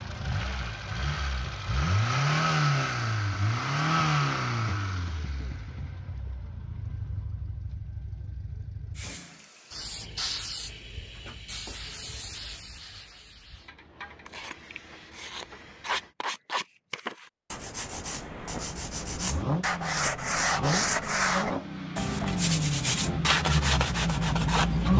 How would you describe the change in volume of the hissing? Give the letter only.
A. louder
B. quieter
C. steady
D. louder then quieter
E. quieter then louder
B.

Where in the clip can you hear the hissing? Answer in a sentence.
You can hear the hissing from 8.9 to 16.1 s.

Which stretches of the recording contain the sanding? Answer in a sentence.
You can hear the sanding from 14.2 to 24.9 s.